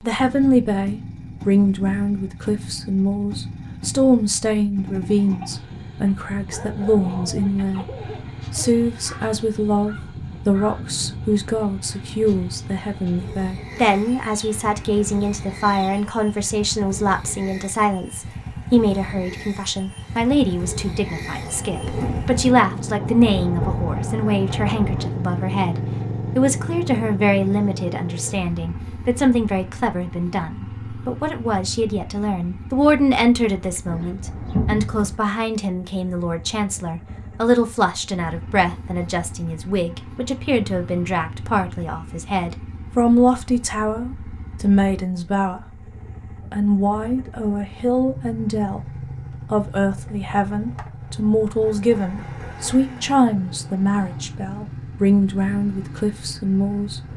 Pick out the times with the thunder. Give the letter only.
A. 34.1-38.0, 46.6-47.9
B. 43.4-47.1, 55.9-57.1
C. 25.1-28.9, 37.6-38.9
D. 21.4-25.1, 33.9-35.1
D.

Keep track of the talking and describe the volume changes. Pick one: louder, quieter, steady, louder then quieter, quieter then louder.
steady.